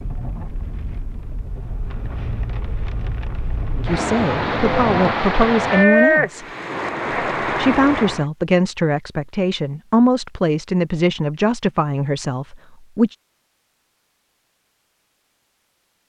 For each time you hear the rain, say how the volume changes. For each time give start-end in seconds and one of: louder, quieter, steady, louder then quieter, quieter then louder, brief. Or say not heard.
0.0-8.2 louder then quieter.